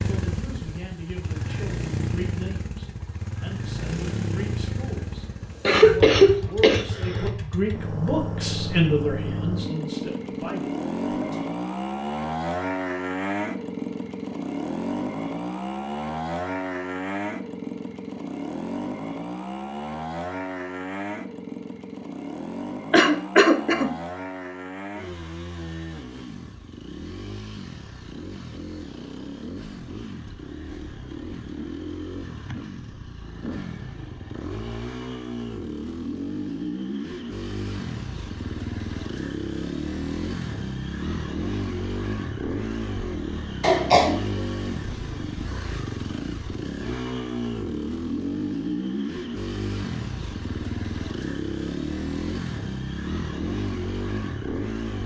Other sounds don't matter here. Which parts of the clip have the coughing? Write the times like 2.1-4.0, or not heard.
5.7-7.3, 22.9-23.9, 43.6-44.2.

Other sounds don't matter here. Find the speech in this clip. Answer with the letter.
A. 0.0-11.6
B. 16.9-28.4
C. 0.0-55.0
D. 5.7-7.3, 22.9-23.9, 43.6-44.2
A.